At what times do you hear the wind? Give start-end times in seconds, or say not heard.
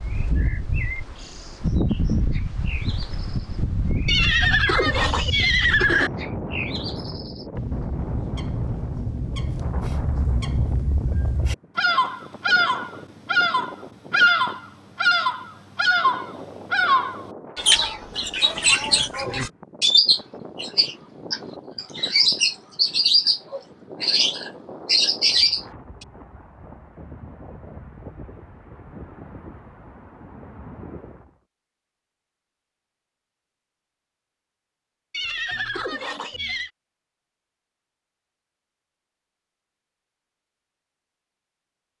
0.0-31.4.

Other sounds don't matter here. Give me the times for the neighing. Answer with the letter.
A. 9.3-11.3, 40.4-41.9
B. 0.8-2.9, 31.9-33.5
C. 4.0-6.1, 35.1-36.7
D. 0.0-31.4
C.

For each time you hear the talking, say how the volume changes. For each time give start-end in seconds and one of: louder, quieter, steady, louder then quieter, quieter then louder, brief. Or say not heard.
not heard.